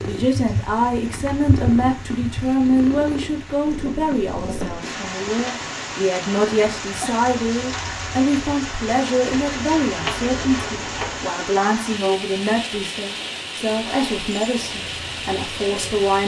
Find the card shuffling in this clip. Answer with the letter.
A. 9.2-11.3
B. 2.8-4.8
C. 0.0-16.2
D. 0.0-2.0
A.